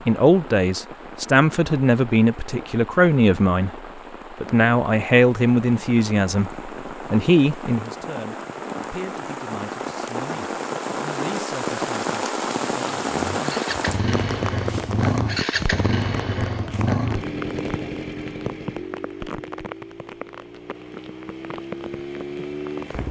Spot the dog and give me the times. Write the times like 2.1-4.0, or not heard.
not heard.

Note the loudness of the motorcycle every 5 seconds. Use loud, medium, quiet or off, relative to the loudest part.
off, off, loud, loud, medium.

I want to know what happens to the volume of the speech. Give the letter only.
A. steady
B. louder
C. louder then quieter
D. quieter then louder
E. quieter
E.